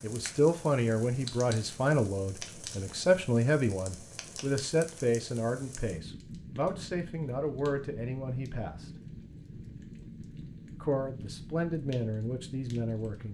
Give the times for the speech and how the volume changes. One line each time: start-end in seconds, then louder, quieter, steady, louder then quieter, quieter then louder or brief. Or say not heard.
0.0-8.9 quieter
10.8-13.2 brief.